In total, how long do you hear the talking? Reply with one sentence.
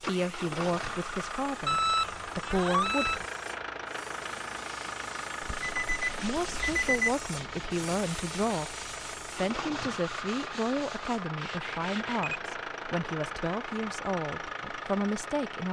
The talking can be heard for 13 seconds in total.